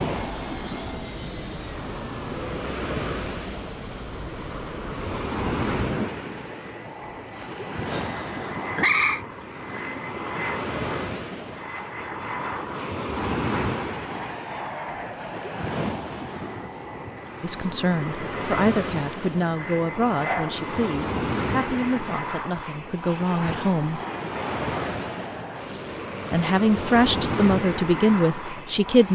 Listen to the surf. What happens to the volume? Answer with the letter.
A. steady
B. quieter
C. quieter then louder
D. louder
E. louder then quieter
A.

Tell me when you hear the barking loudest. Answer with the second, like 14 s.
9 s.